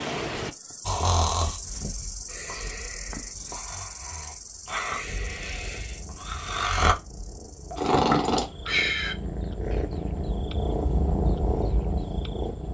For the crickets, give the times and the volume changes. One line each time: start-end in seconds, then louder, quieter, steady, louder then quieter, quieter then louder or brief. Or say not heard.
0.0-12.7 quieter.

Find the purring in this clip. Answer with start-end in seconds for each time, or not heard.
5.0-12.7.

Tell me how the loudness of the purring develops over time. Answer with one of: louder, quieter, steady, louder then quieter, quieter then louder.
louder.